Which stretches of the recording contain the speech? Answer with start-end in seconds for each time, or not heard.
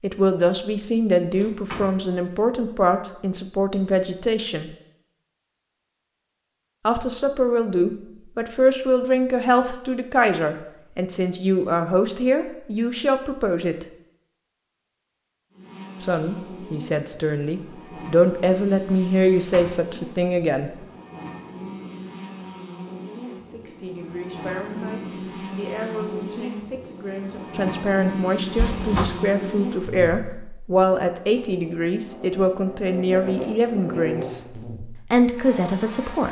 0.0-4.7, 6.8-13.8, 16.0-20.7, 23.2-34.4, 35.1-36.2.